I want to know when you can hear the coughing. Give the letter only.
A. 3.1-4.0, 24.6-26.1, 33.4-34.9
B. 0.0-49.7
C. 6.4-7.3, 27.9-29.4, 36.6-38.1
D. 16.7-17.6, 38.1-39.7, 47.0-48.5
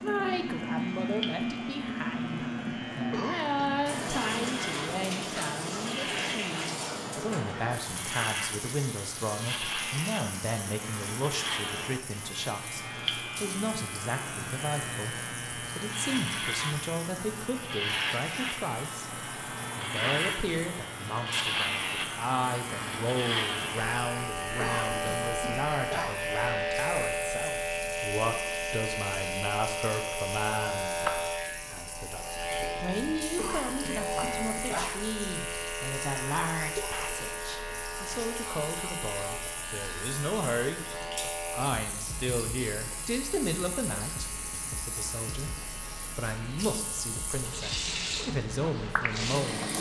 A.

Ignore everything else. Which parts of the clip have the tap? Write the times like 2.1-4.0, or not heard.
0.0-49.7.